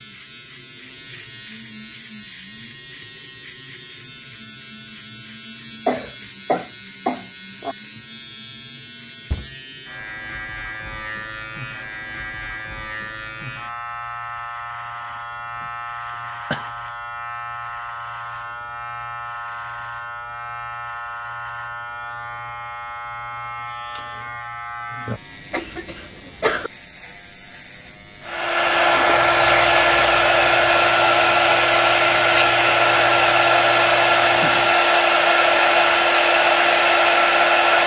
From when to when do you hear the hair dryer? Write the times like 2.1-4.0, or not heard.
28.2-37.8.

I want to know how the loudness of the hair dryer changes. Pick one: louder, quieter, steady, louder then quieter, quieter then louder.
steady.